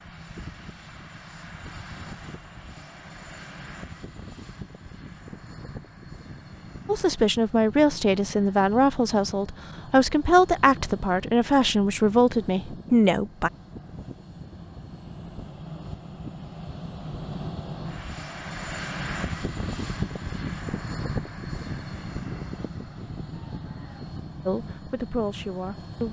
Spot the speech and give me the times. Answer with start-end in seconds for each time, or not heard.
6.8-13.5, 24.4-26.0.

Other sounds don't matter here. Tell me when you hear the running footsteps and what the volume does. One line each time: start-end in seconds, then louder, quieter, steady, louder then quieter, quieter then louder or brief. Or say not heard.
not heard.